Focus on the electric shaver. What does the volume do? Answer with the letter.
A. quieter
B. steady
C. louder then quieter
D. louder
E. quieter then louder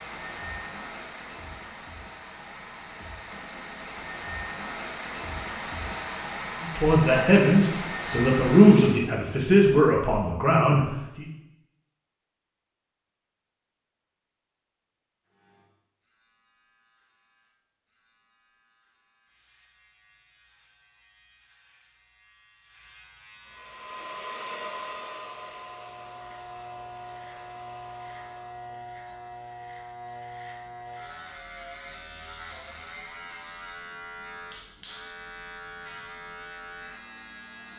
D.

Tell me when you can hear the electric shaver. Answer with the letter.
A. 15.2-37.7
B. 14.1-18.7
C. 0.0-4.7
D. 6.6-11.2
A.